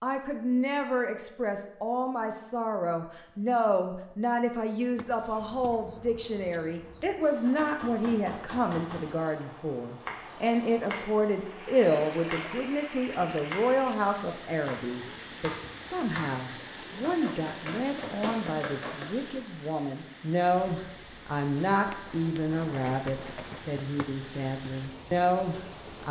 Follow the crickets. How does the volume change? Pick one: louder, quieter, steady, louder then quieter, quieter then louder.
quieter.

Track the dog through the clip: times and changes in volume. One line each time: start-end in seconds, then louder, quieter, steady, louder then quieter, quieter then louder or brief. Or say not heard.
not heard.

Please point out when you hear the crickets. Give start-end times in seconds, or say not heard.
4.8-26.0.